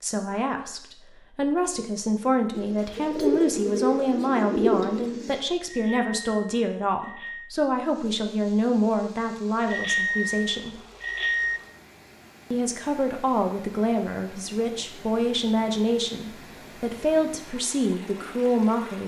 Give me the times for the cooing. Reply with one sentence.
You can hear the cooing from 2.5 to 5.5 s.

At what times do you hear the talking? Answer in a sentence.
You can hear the talking from 0.0 to 10.8 s and from 12.5 to 19.0 s.